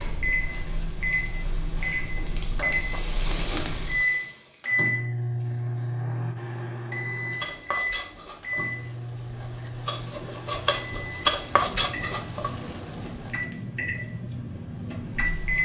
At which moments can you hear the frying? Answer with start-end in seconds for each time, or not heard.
0.0-4.7, 7.2-13.4.